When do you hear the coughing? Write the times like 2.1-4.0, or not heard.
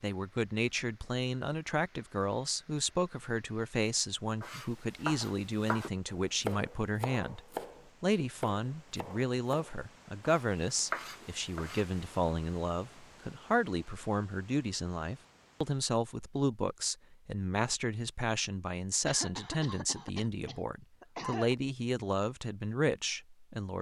19.1-21.6.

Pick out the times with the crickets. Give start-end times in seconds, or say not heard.
not heard.